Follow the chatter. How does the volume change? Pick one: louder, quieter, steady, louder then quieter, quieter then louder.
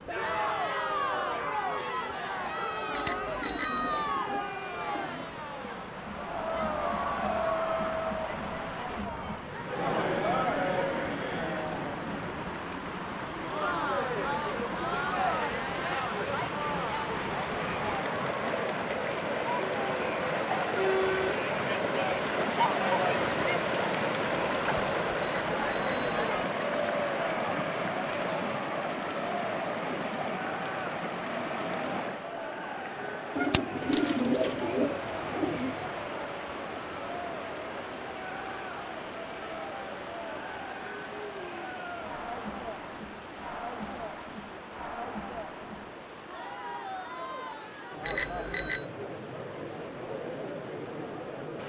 quieter.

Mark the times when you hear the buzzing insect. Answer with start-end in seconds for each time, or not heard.
not heard.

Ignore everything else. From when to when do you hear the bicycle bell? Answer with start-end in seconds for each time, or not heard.
2.9-4.2, 25.2-26.1, 48.0-48.9.